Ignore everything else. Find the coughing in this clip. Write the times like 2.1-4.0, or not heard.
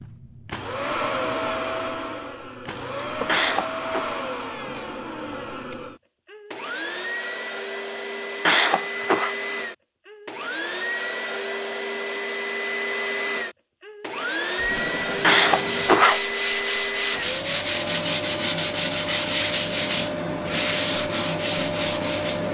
3.2-4.1, 8.4-9.3, 15.2-16.2.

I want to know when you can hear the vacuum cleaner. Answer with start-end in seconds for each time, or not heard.
0.0-22.4.